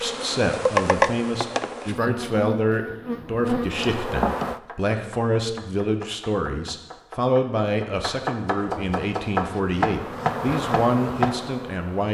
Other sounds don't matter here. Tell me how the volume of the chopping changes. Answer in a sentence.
The loudness of the chopping goes up.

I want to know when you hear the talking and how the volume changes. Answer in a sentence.
You can hear the talking from 0.0 to 12.0 s, at a steady volume.